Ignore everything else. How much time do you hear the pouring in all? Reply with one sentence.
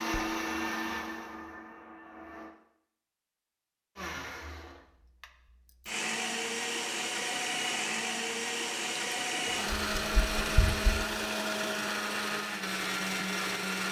You can hear the pouring for 2 seconds altogether.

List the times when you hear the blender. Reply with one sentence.
You can hear the blender from 0.0 to 2.5 s and from 4.0 to 13.8 s.